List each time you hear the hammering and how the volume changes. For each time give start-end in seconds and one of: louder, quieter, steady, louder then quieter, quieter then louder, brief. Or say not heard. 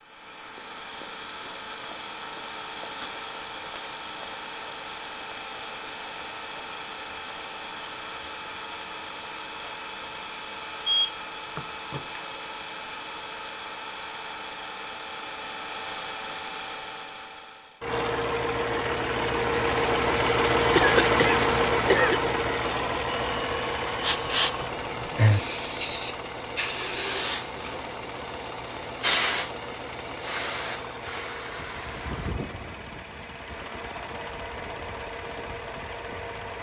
not heard.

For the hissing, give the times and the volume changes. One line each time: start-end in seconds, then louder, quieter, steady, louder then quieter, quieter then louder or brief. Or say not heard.
24.0-36.5 quieter.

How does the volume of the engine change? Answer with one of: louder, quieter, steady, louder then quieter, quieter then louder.
louder then quieter.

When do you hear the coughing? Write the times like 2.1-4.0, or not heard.
20.8-22.3.